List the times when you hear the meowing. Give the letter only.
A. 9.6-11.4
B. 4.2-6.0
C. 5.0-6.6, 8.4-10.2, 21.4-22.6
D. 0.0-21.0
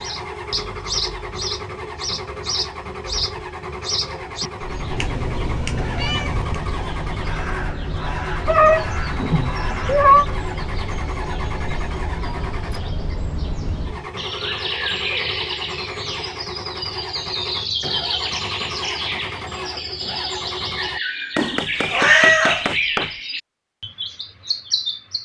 C.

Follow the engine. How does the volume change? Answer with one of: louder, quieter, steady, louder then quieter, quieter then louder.
steady.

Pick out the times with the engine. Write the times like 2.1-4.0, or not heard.
0.0-21.0.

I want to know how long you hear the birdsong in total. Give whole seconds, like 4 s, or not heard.
25 s.